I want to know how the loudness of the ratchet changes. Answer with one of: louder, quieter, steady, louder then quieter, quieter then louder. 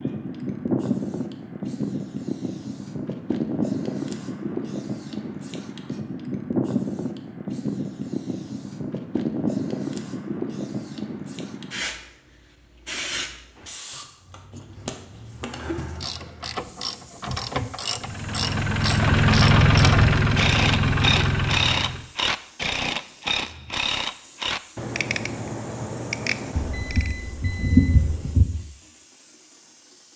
louder then quieter.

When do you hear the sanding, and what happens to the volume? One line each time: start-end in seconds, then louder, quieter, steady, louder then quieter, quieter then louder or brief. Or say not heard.
not heard.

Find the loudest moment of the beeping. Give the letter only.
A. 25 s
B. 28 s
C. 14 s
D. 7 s
B.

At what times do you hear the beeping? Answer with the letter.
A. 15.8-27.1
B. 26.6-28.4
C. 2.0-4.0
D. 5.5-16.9
B.